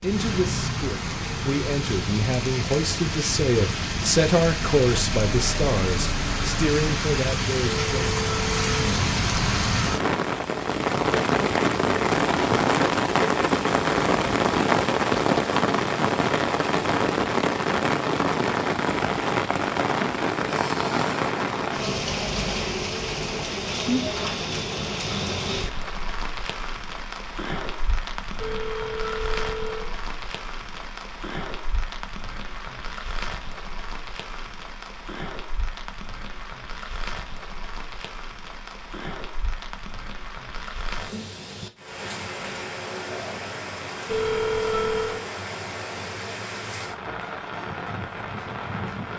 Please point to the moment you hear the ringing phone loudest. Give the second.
45 s.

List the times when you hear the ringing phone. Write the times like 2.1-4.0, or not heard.
7.8-8.8, 28.4-29.9, 44.0-45.2.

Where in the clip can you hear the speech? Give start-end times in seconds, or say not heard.
0.0-8.1.